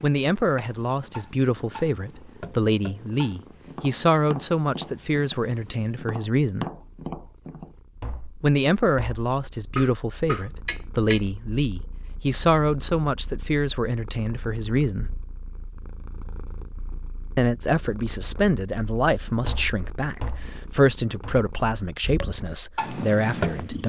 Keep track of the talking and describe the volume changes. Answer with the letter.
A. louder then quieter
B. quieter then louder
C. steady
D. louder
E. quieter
C.